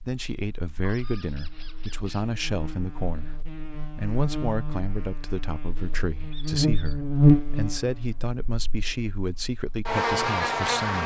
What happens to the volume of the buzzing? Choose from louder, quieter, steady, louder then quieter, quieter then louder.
louder then quieter.